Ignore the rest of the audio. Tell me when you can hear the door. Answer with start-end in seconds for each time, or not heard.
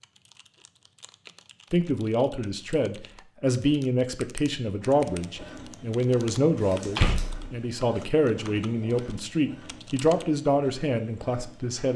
6.7-8.0.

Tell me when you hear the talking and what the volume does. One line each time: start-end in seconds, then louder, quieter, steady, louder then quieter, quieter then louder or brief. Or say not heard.
1.7-11.9 steady.